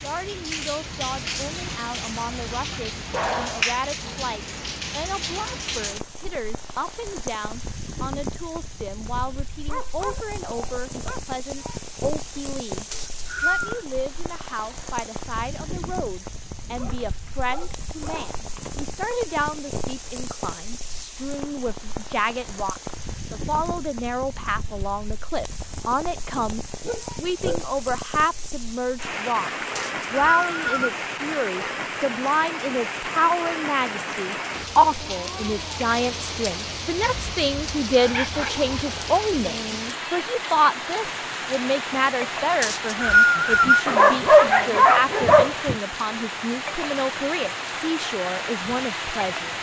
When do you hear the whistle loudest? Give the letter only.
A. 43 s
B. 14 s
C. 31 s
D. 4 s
A.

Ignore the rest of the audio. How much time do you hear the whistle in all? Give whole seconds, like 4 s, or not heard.
3 s.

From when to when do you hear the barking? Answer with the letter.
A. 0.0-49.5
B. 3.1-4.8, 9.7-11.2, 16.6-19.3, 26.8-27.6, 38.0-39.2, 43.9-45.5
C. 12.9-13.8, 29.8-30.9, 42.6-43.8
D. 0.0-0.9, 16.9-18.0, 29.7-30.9
B.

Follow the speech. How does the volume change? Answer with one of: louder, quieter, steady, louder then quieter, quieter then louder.
louder.